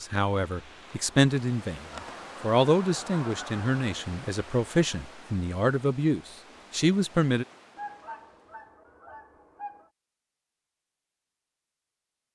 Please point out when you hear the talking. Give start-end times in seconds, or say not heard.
0.0-7.5.